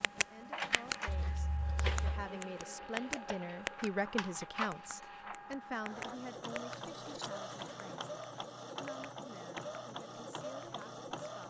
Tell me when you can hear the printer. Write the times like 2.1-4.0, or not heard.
0.0-11.4.